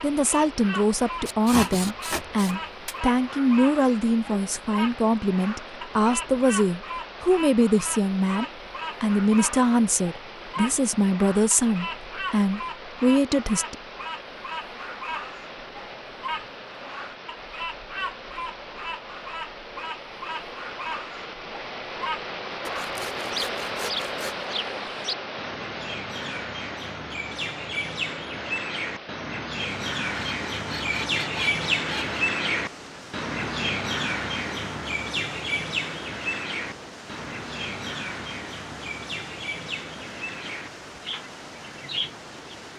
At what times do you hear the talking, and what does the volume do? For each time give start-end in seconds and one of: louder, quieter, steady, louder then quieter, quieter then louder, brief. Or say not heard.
0.0-13.8 steady.